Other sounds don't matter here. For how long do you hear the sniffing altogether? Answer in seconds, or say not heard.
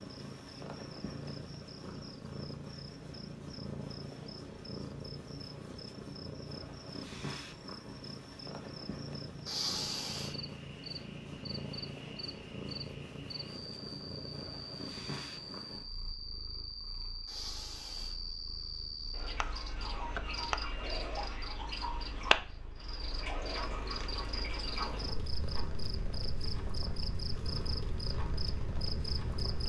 2 s.